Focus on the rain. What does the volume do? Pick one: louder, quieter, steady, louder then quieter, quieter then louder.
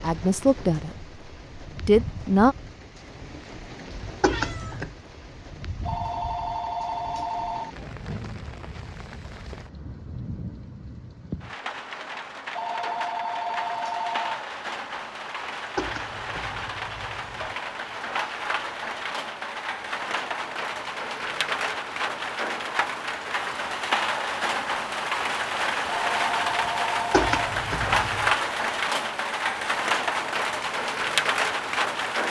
louder.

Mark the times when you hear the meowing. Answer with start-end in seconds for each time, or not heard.
4.2-5.0, 15.8-17.6, 27.1-28.4.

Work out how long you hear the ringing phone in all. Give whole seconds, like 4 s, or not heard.
5 s.